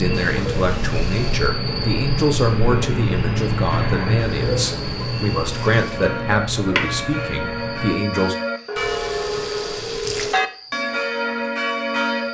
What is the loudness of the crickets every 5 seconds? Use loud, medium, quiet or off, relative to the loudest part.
loud, medium, quiet.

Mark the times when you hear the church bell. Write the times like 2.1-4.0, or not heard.
5.4-12.2.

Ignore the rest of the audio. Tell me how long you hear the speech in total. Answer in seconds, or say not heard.
8 s.